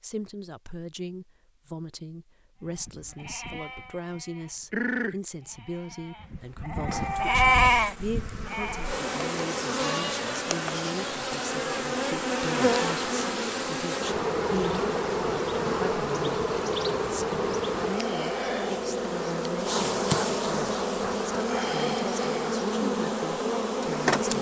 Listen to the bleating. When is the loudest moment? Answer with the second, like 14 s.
8 s.